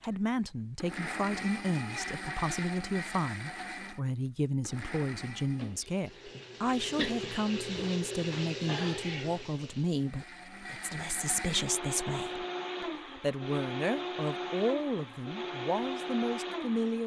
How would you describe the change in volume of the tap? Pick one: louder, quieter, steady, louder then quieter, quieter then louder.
louder then quieter.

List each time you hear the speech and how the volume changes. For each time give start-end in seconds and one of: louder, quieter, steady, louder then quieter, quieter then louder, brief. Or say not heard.
0.0-17.0 steady.